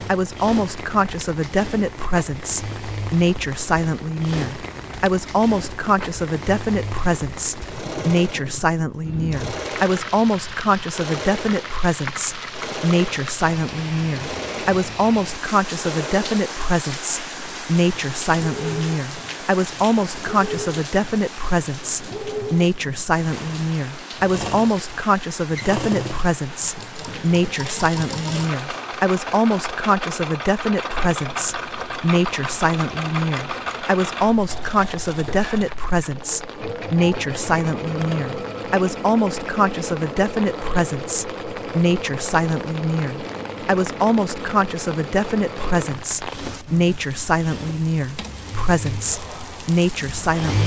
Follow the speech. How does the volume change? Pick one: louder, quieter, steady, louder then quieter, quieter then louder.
steady.